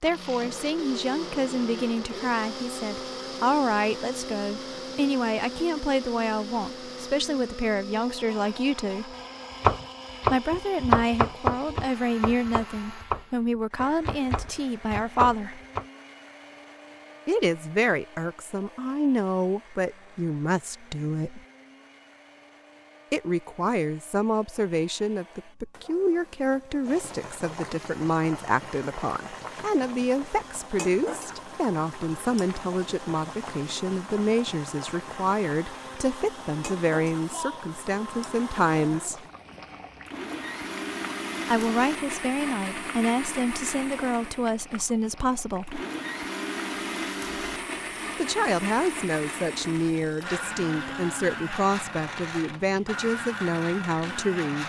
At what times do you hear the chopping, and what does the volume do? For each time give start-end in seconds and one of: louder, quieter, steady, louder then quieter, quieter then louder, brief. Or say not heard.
9.6-15.8 quieter then louder.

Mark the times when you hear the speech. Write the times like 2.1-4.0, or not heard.
0.0-9.2, 10.2-15.6, 17.2-21.4, 23.1-39.2, 41.5-45.8, 48.1-54.6.